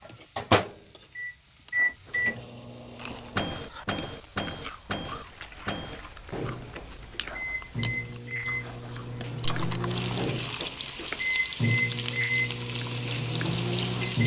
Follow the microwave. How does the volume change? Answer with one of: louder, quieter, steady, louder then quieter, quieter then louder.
quieter then louder.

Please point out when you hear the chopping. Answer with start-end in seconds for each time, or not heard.
not heard.